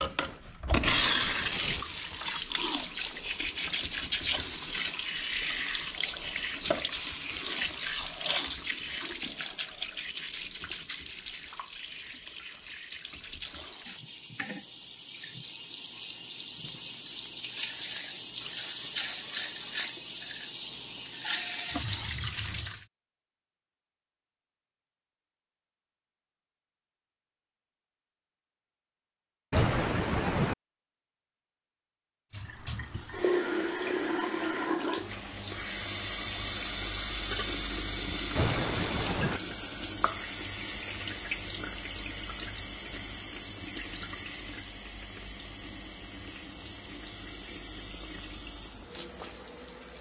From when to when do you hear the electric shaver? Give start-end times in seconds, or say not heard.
not heard.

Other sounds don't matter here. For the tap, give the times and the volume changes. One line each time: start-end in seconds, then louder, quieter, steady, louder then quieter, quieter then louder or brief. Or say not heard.
0.0-22.9 quieter then louder
32.3-49.9 quieter.